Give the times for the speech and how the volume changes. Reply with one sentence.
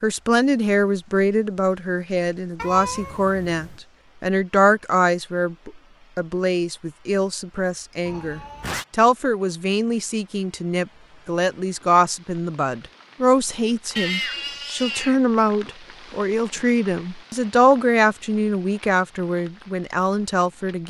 You can hear the speech from 0.0 to 20.8 s, at a steady volume.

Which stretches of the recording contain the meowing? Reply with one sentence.
The meowing can be heard from 2.5 to 3.8 s, from 8.1 to 8.8 s and from 13.9 to 15.2 s.